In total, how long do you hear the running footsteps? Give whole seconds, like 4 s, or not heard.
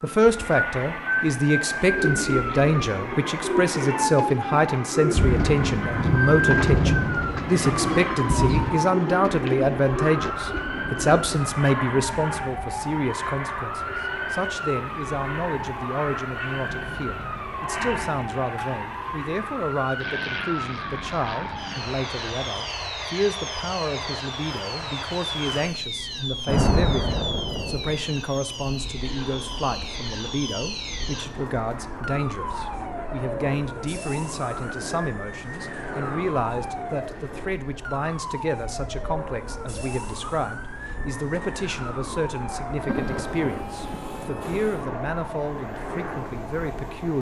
not heard.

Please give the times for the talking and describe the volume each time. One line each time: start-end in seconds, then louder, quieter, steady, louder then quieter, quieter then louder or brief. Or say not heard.
0.0-47.1 quieter.